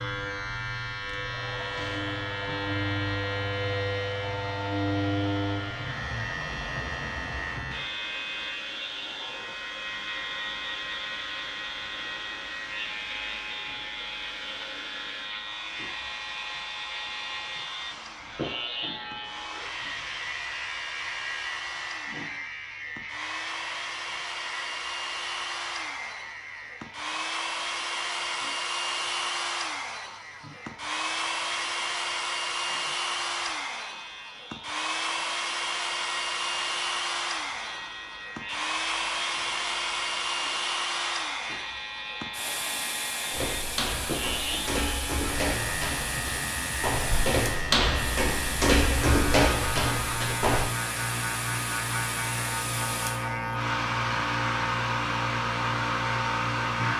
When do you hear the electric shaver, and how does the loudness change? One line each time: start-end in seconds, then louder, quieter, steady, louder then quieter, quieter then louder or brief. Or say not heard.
0.0-56.9 quieter then louder.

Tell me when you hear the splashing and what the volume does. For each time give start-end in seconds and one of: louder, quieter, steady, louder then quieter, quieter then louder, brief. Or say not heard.
not heard.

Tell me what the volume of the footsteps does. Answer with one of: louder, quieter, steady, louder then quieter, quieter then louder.
louder.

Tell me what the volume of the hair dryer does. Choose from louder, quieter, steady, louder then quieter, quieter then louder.
louder.